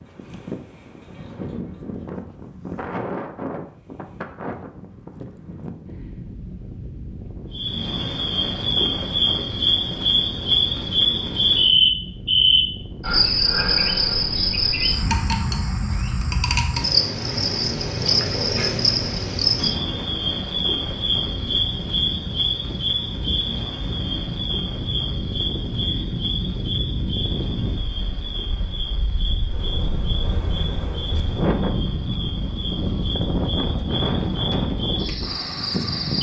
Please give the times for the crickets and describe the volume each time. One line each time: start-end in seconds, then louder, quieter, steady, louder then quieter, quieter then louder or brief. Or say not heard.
7.5-36.1 quieter.